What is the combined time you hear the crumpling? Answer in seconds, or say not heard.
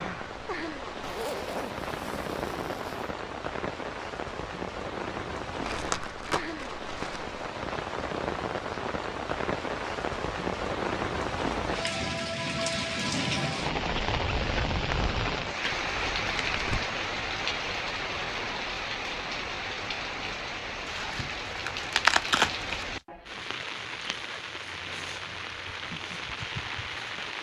5 s.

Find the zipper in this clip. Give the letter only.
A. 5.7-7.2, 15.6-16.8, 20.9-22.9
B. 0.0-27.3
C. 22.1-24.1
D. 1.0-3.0
D.